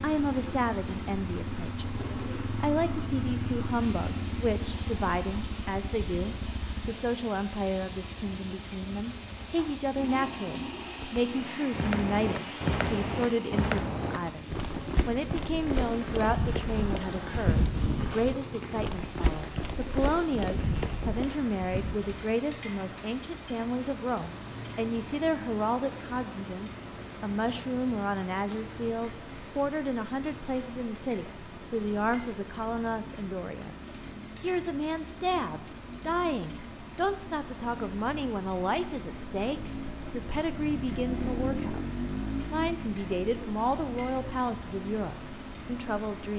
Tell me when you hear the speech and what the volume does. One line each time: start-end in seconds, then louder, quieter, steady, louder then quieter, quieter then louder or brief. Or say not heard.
0.0-1.9 brief
2.6-14.4 steady
15.1-46.3 steady.